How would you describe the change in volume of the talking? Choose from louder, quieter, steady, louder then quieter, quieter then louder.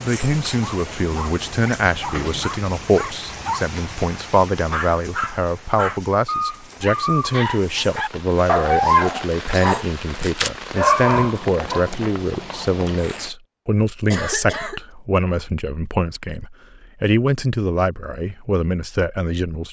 steady.